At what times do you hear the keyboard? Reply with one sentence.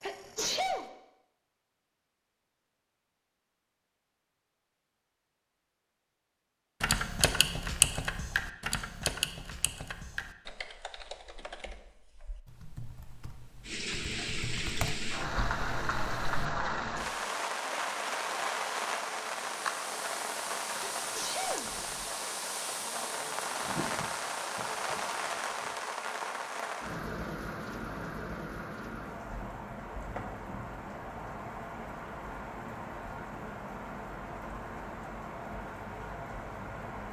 You can hear the keyboard from 6.8 to 16.4 s.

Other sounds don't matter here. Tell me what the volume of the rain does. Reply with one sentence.
The volume of the rain goes down.